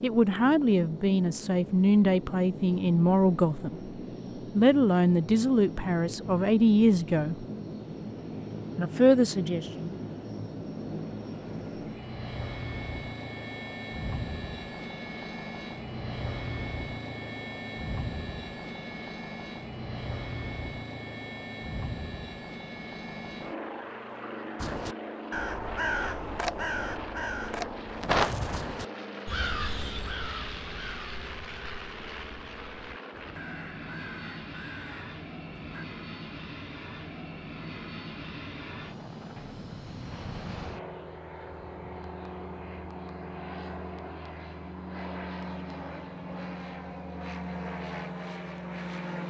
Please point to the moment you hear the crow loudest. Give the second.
28 s.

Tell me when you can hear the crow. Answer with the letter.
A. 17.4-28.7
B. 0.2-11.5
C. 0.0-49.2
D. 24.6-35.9
D.